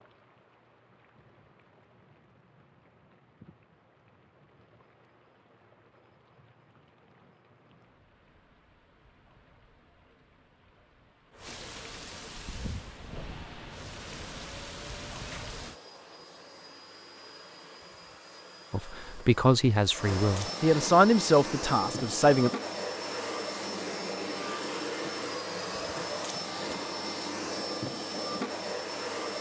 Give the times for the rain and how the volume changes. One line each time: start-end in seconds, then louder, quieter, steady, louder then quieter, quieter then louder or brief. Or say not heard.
0.0-15.8 louder.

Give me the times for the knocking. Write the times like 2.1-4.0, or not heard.
not heard.